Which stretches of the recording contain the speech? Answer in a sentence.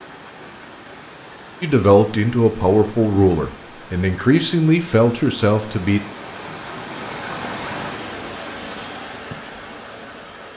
You can hear the speech from 1.6 to 6.0 s.